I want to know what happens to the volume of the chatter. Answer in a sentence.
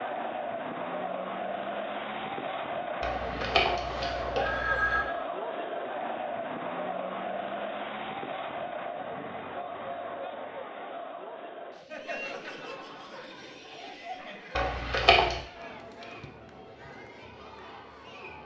The volume of the chatter goes down.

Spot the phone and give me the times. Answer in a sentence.
You can hear the phone from 3.0 to 5.0 s and from 14.6 to 15.4 s.